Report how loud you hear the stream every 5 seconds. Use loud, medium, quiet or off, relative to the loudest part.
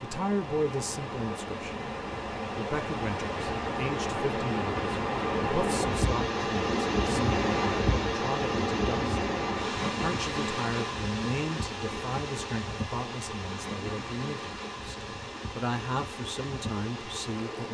medium, loud, medium, medium.